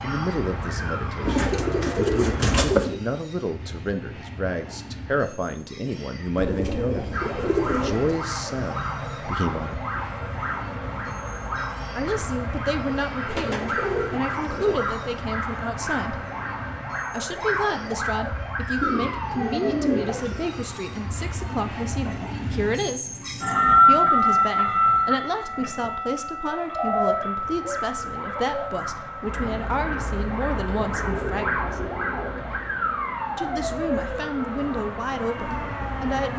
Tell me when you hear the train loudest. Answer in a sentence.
The volume of the train peaks at 24 seconds.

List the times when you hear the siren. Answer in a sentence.
You can hear the siren from 0.0 to 2.6 s, from 7.1 to 22.1 s and from 26.8 to 36.3 s.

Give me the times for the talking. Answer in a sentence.
The talking can be heard from 0.0 to 9.8 s, from 11.9 to 16.2 s, from 17.1 to 23.1 s, from 23.7 to 31.9 s and from 33.4 to 36.3 s.